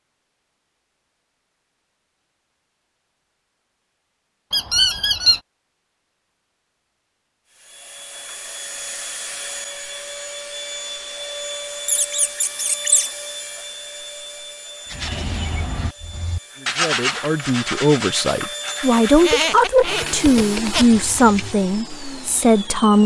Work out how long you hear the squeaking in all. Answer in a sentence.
You can hear the squeaking for 4 seconds altogether.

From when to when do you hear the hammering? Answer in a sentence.
The hammering can't be heard in this clip.